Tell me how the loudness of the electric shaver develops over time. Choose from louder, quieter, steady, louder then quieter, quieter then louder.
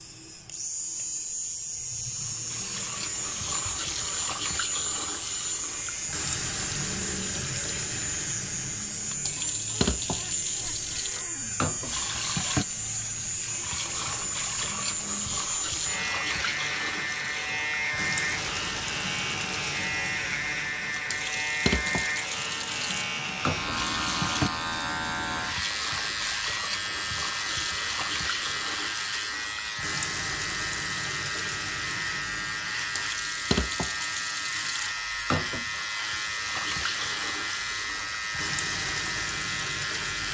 steady.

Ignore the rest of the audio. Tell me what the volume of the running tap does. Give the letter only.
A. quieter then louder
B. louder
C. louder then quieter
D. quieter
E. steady
E.